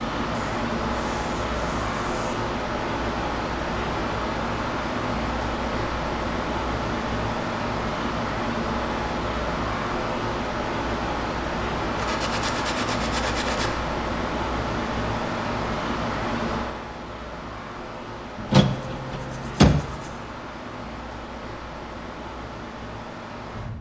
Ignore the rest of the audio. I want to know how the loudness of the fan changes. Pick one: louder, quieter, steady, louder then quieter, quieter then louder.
quieter.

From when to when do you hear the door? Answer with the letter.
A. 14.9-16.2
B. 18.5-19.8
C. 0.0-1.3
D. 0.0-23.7
B.